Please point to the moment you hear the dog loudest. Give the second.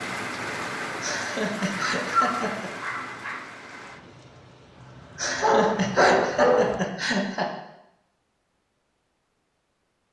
6 s.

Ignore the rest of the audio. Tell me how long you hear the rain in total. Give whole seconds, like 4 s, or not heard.
7 s.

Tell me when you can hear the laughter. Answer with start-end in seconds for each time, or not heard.
1.0-2.7, 5.2-7.5.